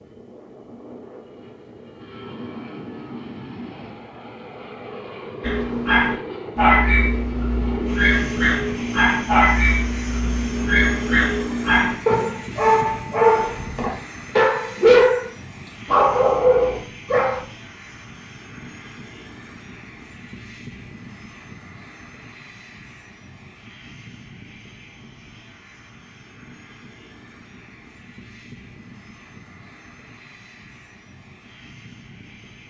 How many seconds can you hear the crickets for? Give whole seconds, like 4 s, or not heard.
not heard.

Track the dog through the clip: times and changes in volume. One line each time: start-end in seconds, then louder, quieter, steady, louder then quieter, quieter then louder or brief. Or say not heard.
5.4-15.2 steady
15.8-17.4 brief.